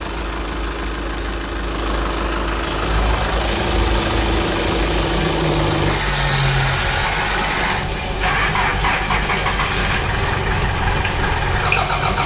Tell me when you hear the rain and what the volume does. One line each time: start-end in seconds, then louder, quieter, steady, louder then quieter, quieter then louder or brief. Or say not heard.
2.5-12.2 steady.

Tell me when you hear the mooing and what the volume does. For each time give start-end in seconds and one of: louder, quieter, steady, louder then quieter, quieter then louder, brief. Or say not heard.
not heard.